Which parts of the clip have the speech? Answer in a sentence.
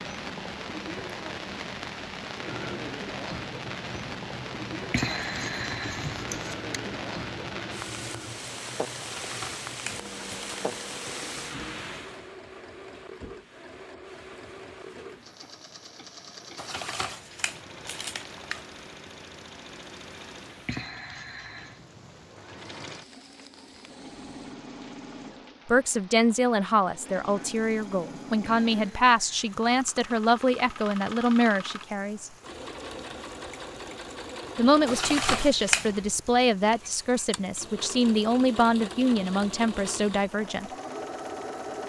You can hear the speech from 25.6 to 32.3 s and from 34.5 to 40.7 s.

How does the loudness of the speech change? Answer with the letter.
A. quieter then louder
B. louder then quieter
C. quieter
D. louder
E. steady
E.